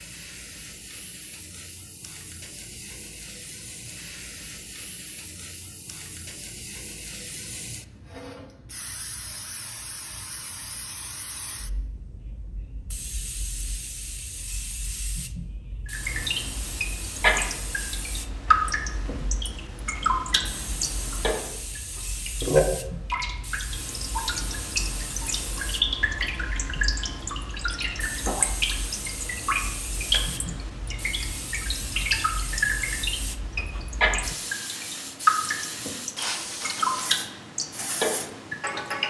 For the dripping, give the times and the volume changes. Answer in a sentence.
The dripping can be heard from 15.8 to 39.0 s, at a steady volume.